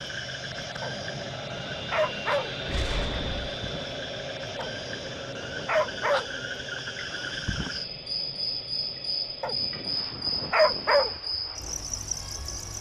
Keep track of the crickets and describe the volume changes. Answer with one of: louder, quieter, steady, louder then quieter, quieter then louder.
louder.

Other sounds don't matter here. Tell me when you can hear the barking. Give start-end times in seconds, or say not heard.
0.8-2.5, 4.5-6.2, 9.4-11.1.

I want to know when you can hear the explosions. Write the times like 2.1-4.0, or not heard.
2.6-3.5.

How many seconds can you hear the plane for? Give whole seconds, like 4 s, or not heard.
13 s.